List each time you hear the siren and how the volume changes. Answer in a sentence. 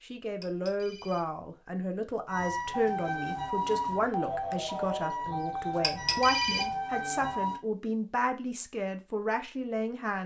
You can hear the siren from 2.2 to 7.6 s, at a steady volume.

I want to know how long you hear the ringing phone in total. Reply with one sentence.
You can hear the ringing phone for 2 seconds altogether.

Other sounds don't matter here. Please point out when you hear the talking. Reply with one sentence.
You can hear the talking from 0.0 to 10.2 s.